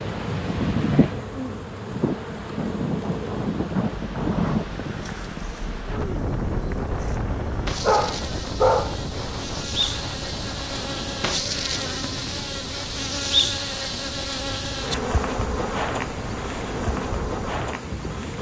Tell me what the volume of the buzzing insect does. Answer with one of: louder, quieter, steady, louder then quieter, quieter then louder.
quieter then louder.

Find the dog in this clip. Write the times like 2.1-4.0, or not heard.
7.8-8.9.